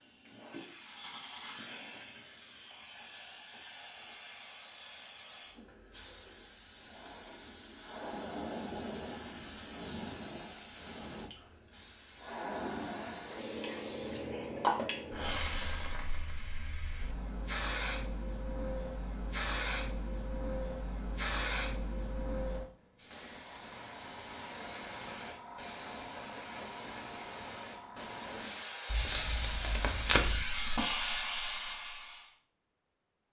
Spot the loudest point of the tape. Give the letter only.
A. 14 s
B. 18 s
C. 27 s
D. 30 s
D.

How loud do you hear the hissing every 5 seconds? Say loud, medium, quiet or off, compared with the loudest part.
medium, medium, loud, loud, loud, loud, loud.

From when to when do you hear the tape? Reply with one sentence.
You can hear the tape from 28.9 to 30.4 s.